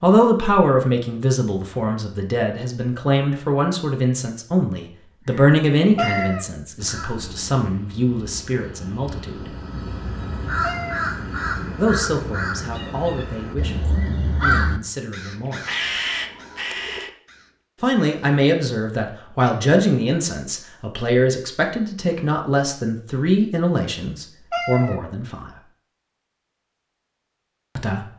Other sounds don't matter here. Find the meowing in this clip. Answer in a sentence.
The meowing can be heard from 6.0 to 6.5 s, from 10.6 to 11.1 s and from 24.5 to 24.9 s.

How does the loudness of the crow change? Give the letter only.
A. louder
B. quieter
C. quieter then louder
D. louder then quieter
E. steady
A.